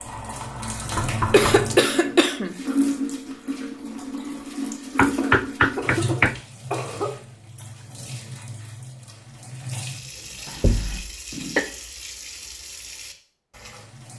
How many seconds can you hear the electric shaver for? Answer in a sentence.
You can't hear the electric shaver here.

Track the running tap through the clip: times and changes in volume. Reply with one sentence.
The running tap can be heard from 0.0 to 14.1 s, getting quieter.